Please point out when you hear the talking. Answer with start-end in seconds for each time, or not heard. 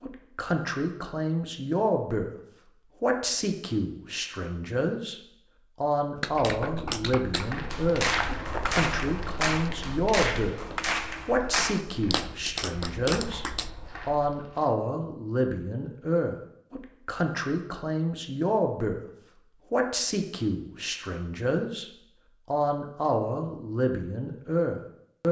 0.0-2.3, 3.0-5.2, 5.8-10.6, 11.2-13.4, 14.1-19.0, 19.7-25.2.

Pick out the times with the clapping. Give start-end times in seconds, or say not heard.
6.2-13.7.